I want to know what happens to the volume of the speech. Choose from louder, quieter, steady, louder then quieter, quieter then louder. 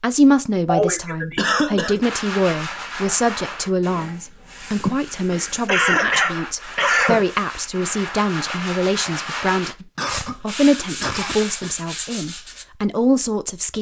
steady.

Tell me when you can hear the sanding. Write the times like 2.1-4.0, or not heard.
2.0-12.7.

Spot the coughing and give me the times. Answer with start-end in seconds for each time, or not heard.
0.7-2.0, 4.8-7.2, 9.9-11.8.